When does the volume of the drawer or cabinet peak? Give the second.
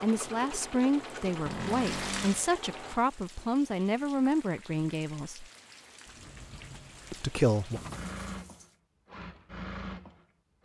2 s.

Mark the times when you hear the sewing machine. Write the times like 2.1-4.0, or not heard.
0.0-3.0, 7.9-10.6.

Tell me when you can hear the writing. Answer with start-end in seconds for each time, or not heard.
not heard.